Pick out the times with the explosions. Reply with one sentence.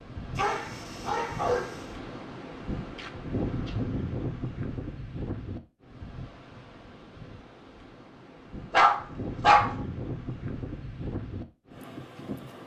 You can't hear the explosions here.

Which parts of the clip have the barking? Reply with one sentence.
You can hear the barking from 0.3 to 1.9 s and from 8.7 to 9.8 s.